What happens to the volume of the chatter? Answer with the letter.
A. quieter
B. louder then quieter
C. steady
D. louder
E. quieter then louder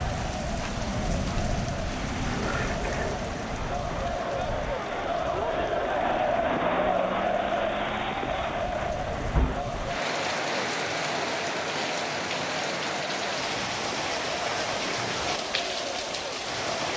B.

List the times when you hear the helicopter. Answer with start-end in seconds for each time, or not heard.
not heard.